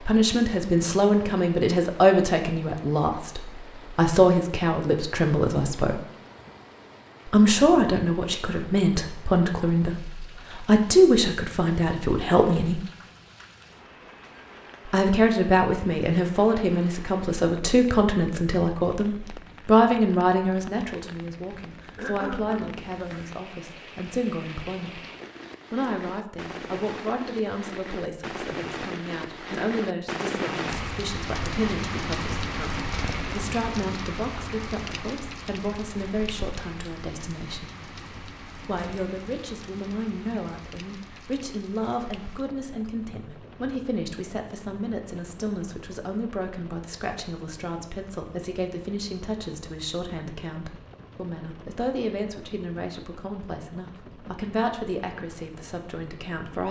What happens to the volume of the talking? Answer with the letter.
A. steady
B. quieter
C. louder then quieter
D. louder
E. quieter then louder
B.